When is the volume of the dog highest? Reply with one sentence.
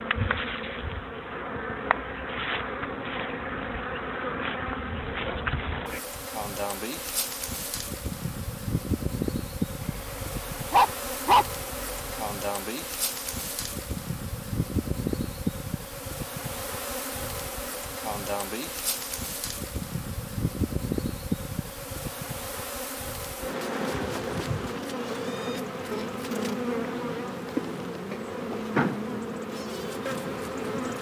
The volume of the dog peaks at 11 seconds.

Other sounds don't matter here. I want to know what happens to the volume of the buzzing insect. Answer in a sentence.
The volume of the buzzing insect stays about the same.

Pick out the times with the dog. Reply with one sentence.
The dog can be heard from 9.8 to 12.2 s.